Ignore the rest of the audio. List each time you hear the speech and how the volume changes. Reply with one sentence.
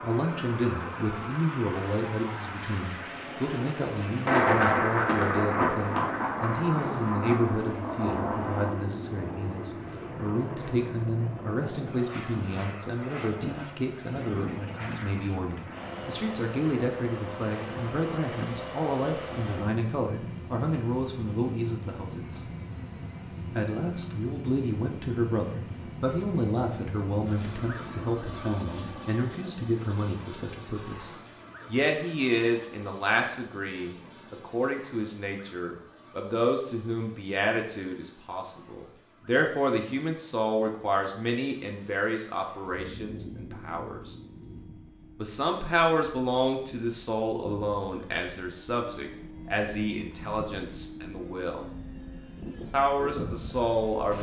You can hear the speech from 0.0 to 22.4 s, at a steady volume; from 23.6 to 44.1 s, at a steady volume; from 45.1 to 51.7 s, getting quieter; and briefly from 52.7 to 54.1 s.